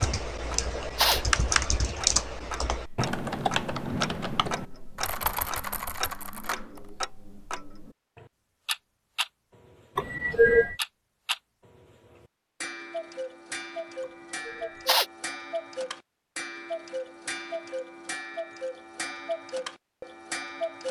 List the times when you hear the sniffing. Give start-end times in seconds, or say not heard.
0.6-1.2, 9.9-10.8, 14.4-15.1.